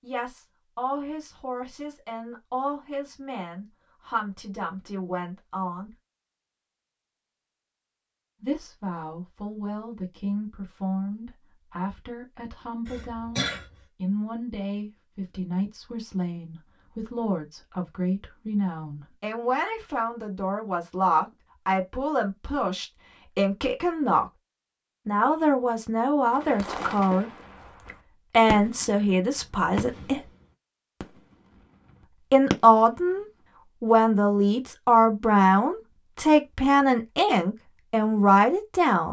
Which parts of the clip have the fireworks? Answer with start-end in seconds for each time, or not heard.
26.4-29.1, 29.8-31.6.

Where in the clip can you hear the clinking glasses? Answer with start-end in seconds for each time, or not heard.
not heard.